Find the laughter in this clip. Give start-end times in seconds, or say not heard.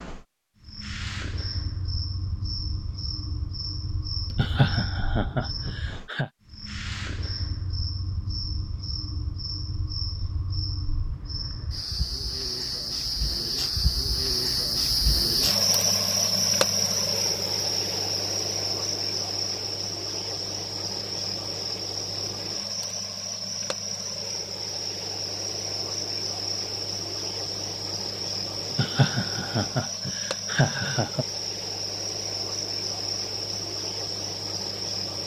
4.3-6.3, 28.7-31.2.